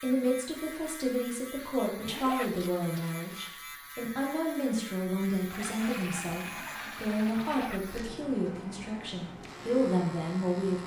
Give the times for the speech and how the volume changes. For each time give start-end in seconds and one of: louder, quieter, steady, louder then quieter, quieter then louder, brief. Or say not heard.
0.0-10.8 steady.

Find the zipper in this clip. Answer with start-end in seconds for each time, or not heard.
2.0-2.5, 7.3-7.8.